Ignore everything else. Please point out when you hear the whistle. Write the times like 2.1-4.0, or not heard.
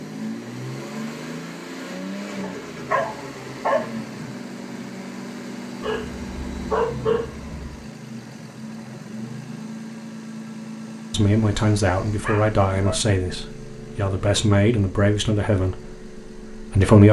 not heard.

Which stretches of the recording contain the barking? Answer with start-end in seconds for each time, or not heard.
2.4-4.0, 5.8-7.8, 12.2-12.9.